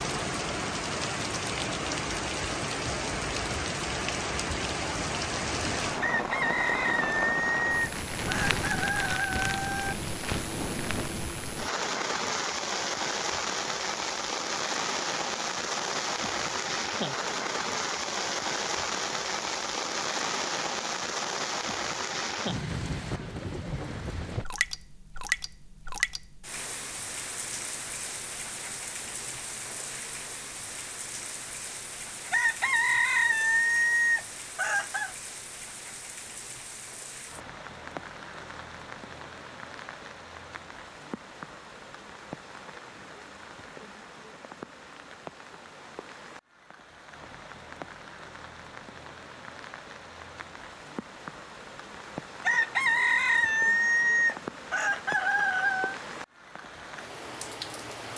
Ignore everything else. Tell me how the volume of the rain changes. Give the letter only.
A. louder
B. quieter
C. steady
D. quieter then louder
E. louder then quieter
B.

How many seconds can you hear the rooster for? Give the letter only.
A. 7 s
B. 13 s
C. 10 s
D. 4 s
C.